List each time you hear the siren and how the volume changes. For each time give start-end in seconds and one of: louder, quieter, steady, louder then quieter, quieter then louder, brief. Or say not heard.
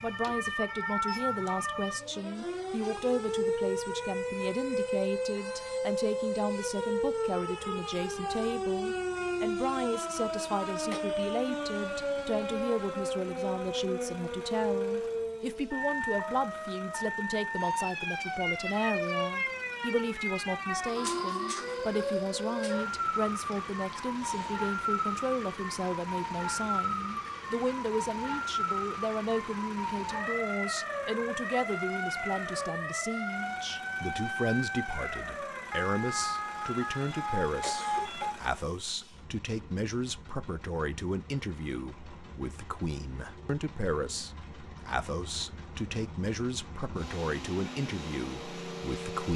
0.0-38.4 steady.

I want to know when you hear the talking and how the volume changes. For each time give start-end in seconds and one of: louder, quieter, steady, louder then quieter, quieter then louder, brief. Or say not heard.
0.0-49.3 steady.